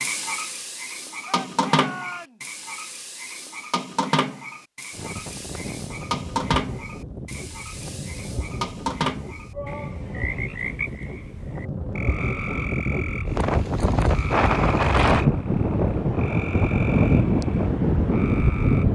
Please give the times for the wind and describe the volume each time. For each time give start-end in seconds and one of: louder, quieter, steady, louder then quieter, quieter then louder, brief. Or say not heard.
4.9-18.9 louder.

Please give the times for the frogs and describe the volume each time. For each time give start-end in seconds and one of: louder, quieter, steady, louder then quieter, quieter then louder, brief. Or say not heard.
0.0-18.9 quieter.